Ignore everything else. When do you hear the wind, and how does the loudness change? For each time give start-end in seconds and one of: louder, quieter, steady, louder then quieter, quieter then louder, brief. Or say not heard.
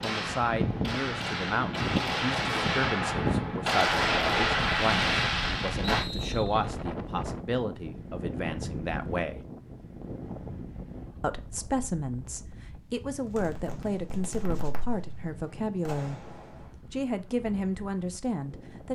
0.0-18.9 quieter.